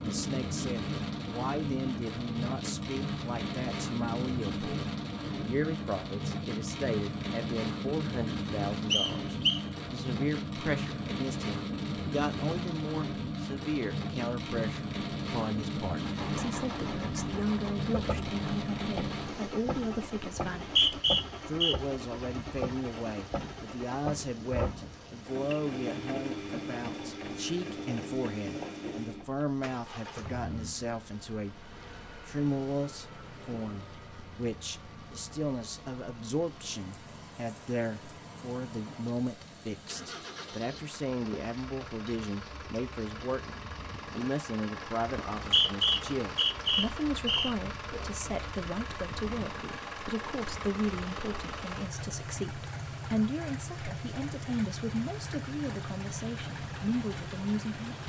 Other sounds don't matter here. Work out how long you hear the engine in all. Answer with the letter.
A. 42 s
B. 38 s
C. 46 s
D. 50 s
A.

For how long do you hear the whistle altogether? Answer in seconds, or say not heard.
4 s.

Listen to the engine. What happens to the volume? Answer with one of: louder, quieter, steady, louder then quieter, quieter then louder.
quieter then louder.